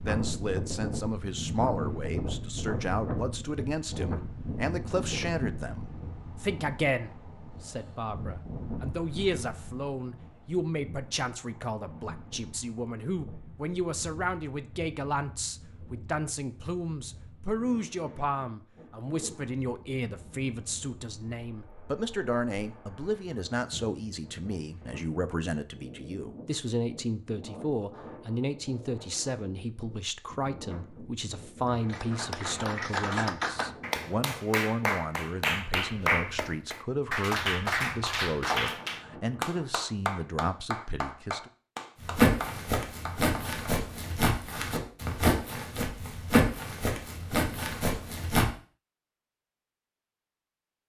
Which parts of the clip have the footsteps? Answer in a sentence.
You can hear the footsteps from 42.0 to 48.5 s.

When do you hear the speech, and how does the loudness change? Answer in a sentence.
The speech can be heard from 0.0 to 41.5 s, at a steady volume.